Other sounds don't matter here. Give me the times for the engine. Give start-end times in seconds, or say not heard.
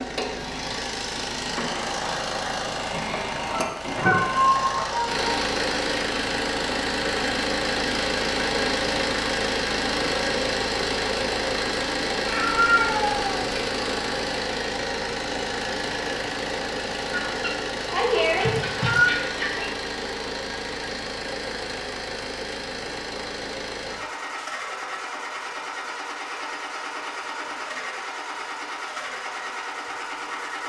0.0-30.6.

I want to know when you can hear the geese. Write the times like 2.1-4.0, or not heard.
3.2-5.2, 17.1-19.8.